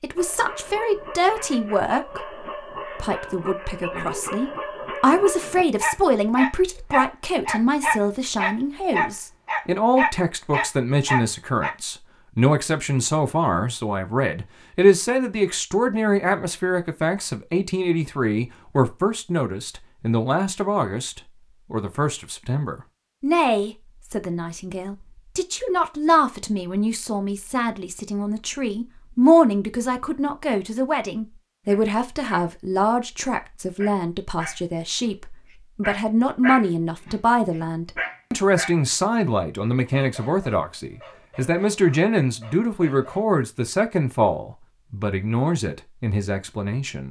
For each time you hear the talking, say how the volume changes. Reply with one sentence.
You can hear the talking from 0.0 to 47.0 s, at a steady volume.